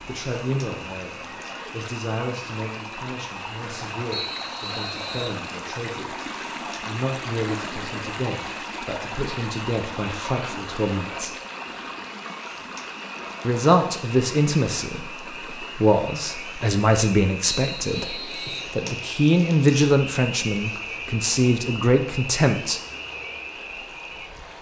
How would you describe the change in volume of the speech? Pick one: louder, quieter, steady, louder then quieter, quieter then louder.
louder.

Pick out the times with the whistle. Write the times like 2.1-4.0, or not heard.
4.1-5.4, 17.4-18.7.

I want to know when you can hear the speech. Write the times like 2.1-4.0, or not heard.
0.1-11.3, 13.4-22.8.